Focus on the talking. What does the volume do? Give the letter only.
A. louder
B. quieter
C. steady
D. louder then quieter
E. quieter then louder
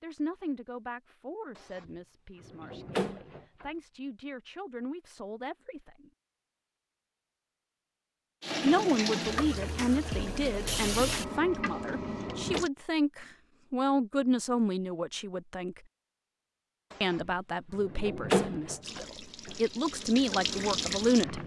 A.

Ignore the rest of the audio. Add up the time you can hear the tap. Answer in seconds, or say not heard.
7 s.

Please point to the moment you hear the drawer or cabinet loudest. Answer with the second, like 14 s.
18 s.